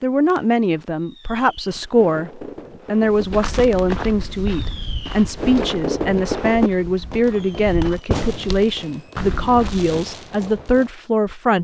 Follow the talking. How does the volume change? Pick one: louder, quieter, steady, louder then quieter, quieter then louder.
steady.